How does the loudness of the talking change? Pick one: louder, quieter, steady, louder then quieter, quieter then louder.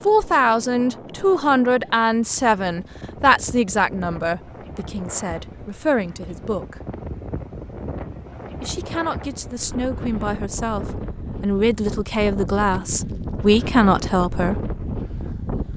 quieter then louder.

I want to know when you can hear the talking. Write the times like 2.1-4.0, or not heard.
0.1-6.8, 8.6-14.7.